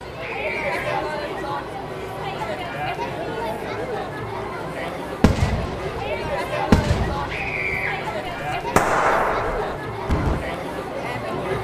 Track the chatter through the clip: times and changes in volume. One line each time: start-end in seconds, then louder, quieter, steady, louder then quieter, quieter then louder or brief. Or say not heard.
0.0-11.5 steady.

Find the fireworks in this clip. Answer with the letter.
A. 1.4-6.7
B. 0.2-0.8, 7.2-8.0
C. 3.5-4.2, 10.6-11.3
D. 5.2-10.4
D.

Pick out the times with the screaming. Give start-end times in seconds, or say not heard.
0.2-0.8, 7.2-8.0.